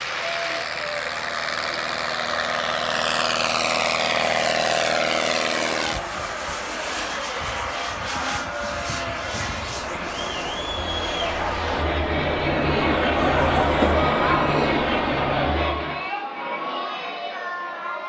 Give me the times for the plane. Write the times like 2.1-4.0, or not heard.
0.0-16.1.